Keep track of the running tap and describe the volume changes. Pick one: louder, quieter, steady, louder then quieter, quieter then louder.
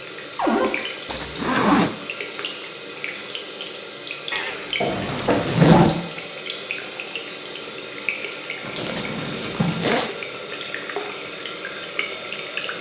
steady.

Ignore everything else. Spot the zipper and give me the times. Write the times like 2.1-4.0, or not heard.
1.1-1.9, 4.3-6.0, 8.8-10.1.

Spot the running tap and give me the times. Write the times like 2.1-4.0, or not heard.
0.0-12.7.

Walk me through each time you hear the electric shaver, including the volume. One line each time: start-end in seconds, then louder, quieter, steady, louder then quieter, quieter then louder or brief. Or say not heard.
not heard.